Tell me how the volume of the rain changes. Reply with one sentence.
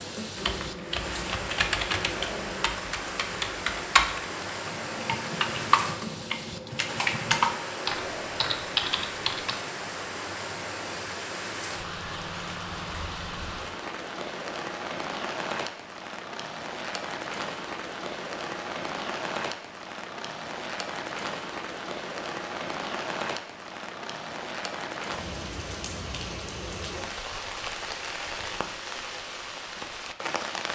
The loudness of the rain stays about the same.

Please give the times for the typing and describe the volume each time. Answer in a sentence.
The typing can be heard from 0.3 to 9.6 s, at a steady volume.